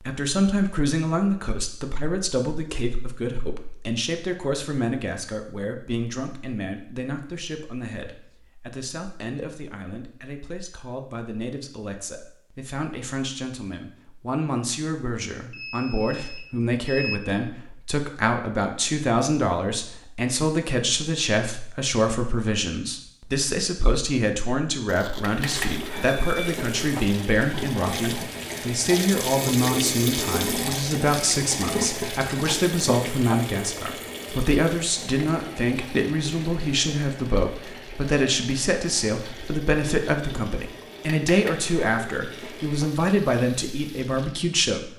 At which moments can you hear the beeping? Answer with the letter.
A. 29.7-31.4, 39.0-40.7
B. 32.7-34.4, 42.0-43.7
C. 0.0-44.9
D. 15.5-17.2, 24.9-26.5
D.